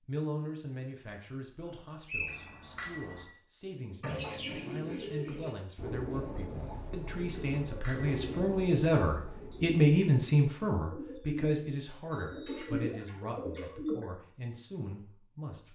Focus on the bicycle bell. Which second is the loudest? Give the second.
3 s.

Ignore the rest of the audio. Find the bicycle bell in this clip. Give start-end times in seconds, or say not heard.
2.2-3.2, 7.3-8.3, 12.1-13.1.